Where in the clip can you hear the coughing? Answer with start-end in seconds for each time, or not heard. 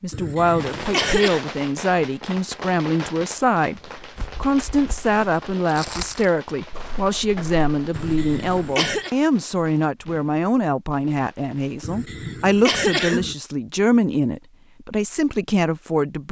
0.1-1.4, 7.9-9.1, 11.8-13.3.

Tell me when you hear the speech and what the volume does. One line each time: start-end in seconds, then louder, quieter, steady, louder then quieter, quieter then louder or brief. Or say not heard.
0.0-16.2 steady.